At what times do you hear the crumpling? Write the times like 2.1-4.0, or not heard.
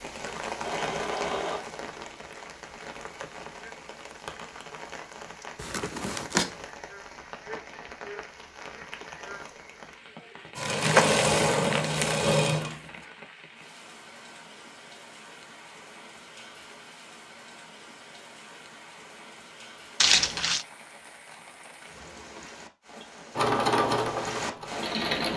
5.5-6.5, 10.6-12.2, 20.0-20.6.